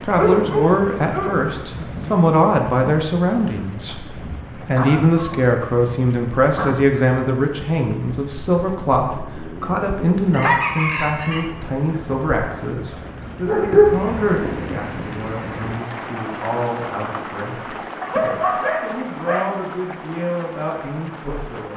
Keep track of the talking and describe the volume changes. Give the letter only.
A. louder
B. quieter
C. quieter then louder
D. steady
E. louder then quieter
B.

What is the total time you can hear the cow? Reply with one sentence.
The cow can't be heard in this clip.